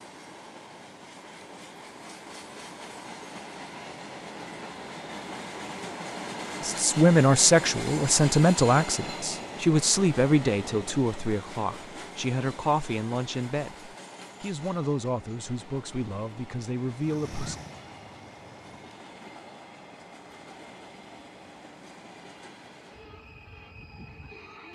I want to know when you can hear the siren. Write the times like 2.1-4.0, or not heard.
16.9-19.0.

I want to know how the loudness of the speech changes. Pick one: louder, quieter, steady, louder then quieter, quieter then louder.
quieter.